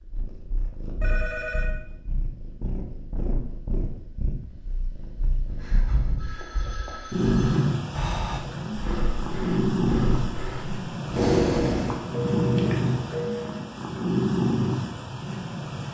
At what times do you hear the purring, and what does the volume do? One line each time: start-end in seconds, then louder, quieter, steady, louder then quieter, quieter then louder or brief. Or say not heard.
0.0-15.8 louder.